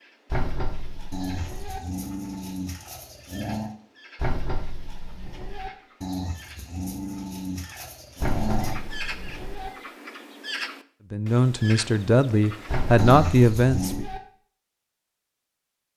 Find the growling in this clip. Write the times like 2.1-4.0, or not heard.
1.1-3.8, 6.0-8.8, 12.9-14.1.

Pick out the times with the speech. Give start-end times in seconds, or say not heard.
11.1-14.1.